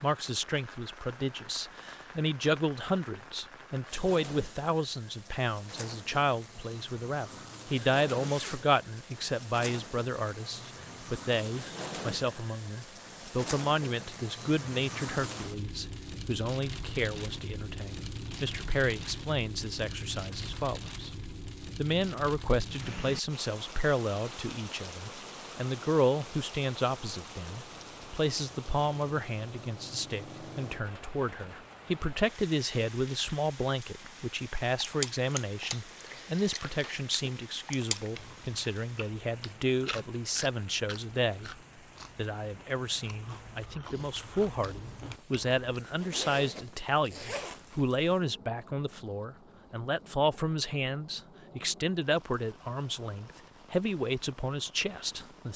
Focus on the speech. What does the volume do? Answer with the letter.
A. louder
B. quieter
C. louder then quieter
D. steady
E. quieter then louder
D.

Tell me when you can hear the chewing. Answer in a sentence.
The chewing can be heard from 34.8 to 45.6 s.